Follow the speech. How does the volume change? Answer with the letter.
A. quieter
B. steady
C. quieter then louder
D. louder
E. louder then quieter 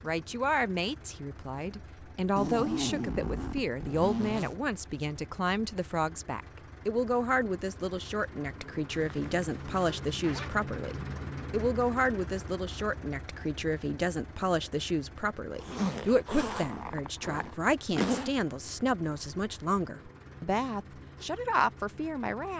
B.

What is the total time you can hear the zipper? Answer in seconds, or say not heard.
6 s.